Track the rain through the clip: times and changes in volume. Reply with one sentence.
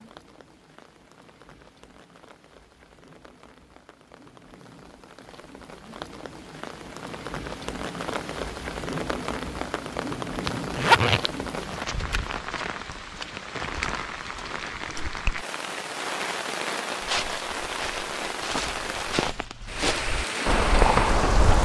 You can hear the rain from 0.0 to 21.5 s, getting louder.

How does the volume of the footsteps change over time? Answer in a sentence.
The volume of the footsteps goes up.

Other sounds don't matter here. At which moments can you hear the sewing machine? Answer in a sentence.
You can't hear the sewing machine here.